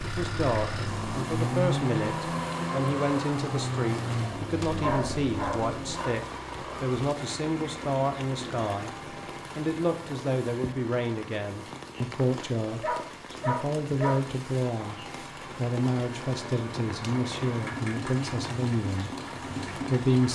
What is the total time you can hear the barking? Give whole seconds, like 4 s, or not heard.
4 s.